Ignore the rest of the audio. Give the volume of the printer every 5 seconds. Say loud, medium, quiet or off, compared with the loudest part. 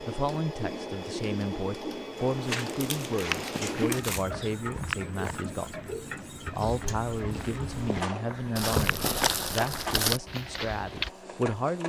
loud, loud, medium.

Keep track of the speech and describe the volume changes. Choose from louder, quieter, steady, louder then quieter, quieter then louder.
steady.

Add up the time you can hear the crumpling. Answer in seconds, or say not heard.
3 s.